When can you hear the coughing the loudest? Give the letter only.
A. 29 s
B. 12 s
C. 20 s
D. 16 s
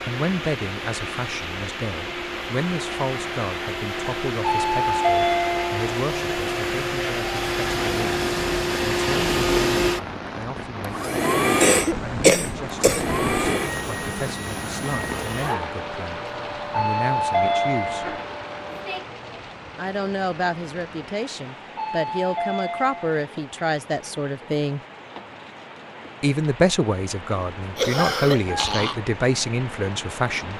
B.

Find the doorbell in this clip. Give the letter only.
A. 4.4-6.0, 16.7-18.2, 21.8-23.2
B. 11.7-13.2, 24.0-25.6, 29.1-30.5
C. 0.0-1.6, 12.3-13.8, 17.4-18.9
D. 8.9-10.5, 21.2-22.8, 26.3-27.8
A.